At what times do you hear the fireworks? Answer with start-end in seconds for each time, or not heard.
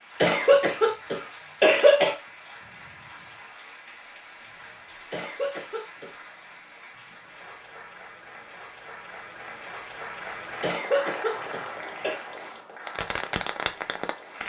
12.8-14.4.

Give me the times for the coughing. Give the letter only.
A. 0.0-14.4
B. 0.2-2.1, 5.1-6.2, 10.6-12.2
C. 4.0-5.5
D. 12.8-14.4
B.